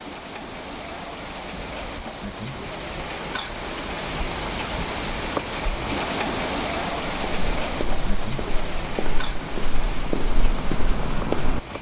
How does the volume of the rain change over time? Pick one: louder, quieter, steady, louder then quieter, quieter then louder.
louder then quieter.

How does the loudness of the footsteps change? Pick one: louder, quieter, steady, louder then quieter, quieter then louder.
louder.